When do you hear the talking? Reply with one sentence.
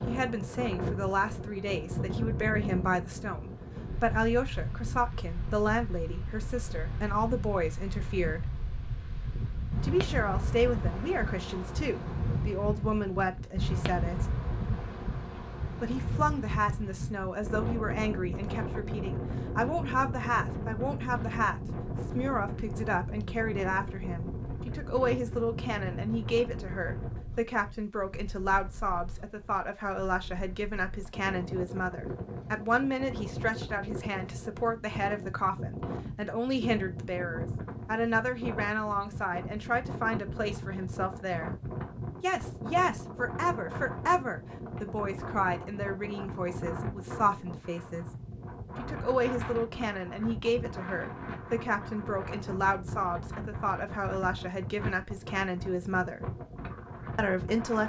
The talking can be heard from 0.1 to 8.6 s, from 9.8 to 14.2 s, from 15.8 to 41.5 s, from 42.2 to 48.0 s, from 48.8 to 56.2 s and from 57.1 to 57.8 s.